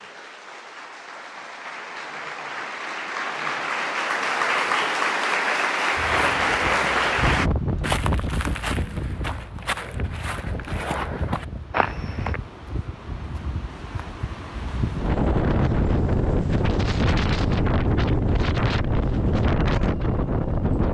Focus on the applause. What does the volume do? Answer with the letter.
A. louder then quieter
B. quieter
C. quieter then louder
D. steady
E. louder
E.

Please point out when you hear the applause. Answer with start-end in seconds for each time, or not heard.
0.0-7.5.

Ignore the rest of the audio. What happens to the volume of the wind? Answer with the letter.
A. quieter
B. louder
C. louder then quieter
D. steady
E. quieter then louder
E.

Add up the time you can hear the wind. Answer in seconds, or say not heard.
15 s.